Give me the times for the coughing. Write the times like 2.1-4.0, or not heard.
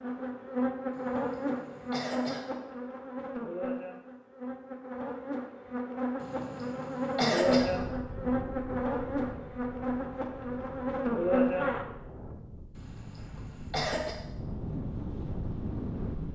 0.9-2.5, 6.2-7.7, 12.8-14.2.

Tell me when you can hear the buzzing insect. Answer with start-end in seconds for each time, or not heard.
0.0-11.8.